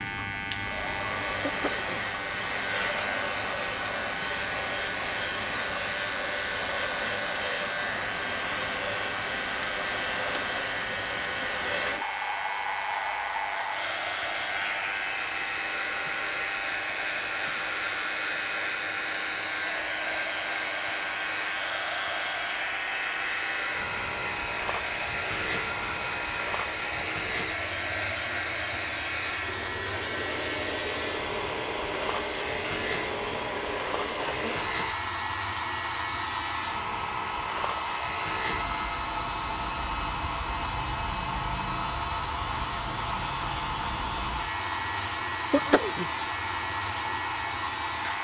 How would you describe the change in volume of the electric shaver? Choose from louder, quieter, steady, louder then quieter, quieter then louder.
steady.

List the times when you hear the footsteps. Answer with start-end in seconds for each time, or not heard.
not heard.